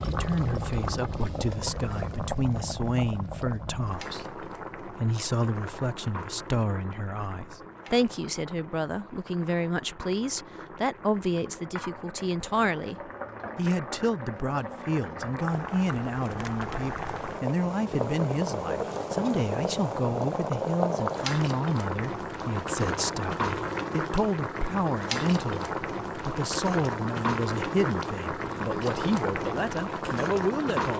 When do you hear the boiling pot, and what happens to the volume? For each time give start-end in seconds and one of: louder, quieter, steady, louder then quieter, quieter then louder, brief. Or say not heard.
0.0-30.9 quieter then louder.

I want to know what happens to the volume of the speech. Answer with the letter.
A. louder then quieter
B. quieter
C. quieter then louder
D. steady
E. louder
D.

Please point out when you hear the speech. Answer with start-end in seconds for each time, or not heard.
0.1-30.9.